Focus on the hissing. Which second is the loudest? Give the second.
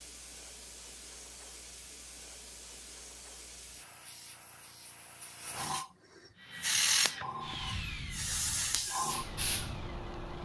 7 s.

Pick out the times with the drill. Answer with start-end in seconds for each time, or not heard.
6.3-10.4.